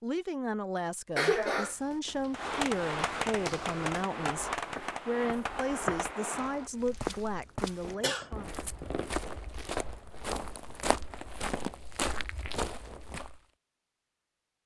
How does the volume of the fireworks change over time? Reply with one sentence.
The volume of the fireworks goes down.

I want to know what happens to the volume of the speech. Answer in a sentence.
The volume of the speech stays about the same.